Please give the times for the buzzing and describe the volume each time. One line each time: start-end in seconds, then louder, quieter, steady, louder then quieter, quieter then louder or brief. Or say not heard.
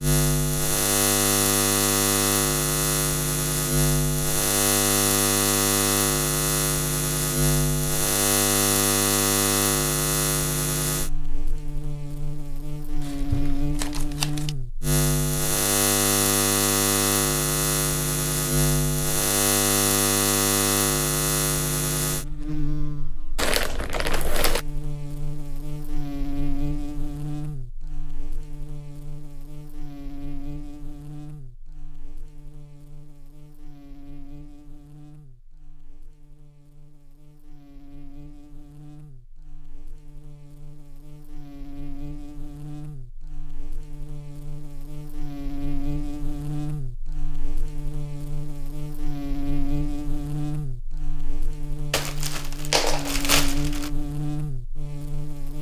0.0-55.5 quieter then louder.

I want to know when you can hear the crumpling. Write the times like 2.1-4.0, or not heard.
13.0-14.5, 23.4-24.6, 51.9-53.9.